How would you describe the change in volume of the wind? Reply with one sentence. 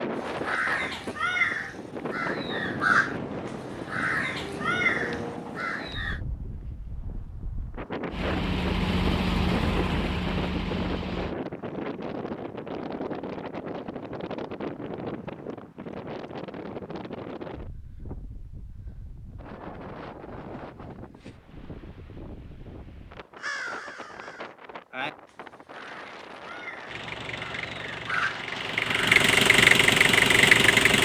The volume of the wind goes down.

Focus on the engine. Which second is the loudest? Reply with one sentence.
The loudest moment of the engine is at 30 seconds.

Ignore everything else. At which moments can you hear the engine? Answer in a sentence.
You can hear the engine from 8.1 to 11.3 s and from 26.9 to 31.0 s.